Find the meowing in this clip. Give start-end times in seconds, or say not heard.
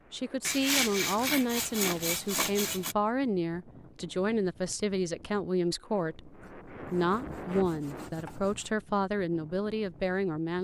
not heard.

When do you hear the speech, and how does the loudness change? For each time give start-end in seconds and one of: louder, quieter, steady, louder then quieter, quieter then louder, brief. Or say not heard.
0.1-10.5 steady.